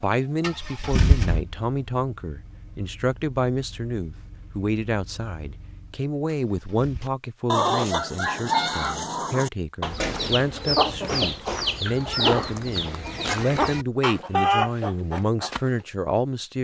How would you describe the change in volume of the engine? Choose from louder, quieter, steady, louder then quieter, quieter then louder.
quieter.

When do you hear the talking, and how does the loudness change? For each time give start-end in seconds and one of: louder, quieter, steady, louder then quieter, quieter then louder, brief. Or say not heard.
0.0-16.5 steady.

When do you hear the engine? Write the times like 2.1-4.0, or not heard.
0.4-7.0.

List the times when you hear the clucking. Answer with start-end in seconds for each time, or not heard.
7.0-15.6.